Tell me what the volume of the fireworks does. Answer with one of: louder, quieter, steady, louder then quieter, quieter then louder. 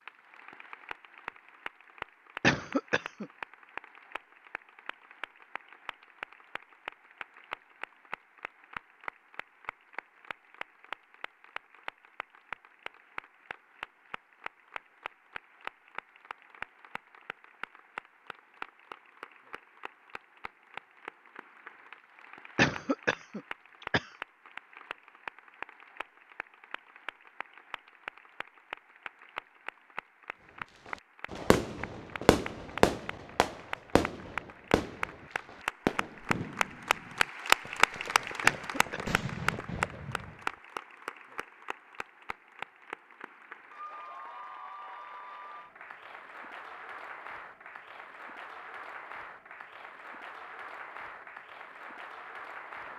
quieter then louder.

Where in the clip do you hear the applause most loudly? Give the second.
38 s.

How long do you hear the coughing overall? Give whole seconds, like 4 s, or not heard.
3 s.